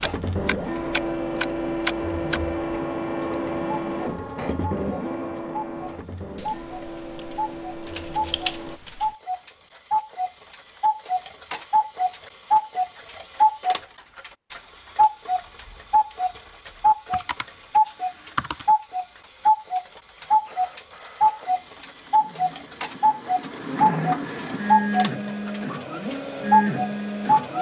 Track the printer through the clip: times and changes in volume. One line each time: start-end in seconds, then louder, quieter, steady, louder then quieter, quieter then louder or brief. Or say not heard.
0.0-8.8 quieter
20.2-27.5 louder.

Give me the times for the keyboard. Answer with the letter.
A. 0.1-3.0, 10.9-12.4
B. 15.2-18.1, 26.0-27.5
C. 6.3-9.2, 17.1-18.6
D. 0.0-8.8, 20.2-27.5
C.